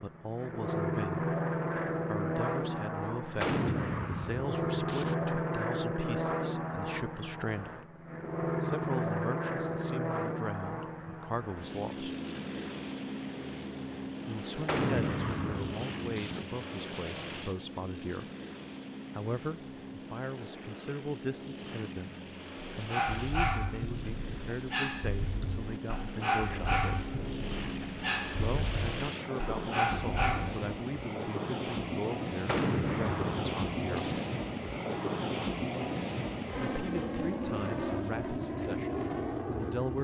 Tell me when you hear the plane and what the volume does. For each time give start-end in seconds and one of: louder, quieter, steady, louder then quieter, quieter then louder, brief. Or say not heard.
0.0-39.9 quieter then louder.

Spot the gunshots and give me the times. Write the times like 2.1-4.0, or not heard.
3.4-5.2, 14.7-16.4, 32.5-34.2.